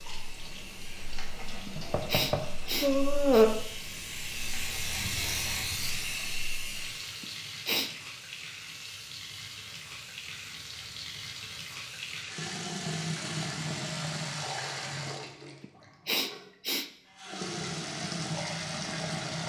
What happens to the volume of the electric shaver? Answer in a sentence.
The volume of the electric shaver goes up, then down.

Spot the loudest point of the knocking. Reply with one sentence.
The volume of the knocking peaks at 3 seconds.